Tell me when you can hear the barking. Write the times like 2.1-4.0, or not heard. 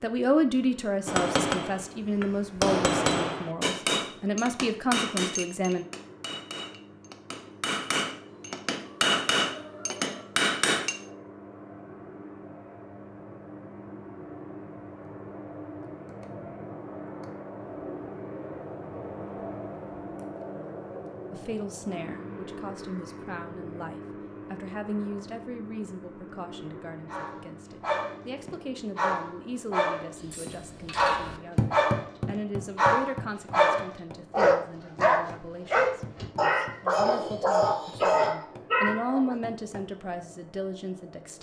27.1-39.4.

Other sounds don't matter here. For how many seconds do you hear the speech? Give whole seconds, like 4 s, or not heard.
26 s.